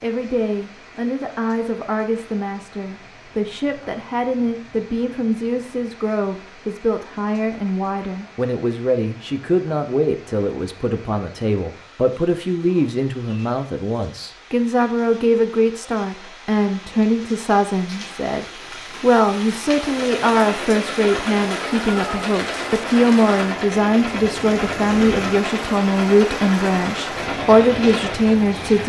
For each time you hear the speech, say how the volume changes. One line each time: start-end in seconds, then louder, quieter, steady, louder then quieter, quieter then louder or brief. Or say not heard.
0.0-28.8 louder.